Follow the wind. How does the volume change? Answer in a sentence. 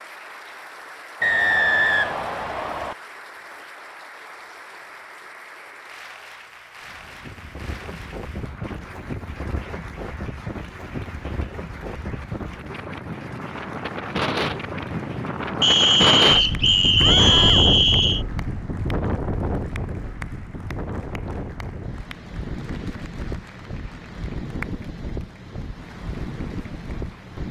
The volume of the wind goes up, then down.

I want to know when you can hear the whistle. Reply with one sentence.
The whistle can be heard from 1.2 to 3.0 s and from 15.6 to 18.2 s.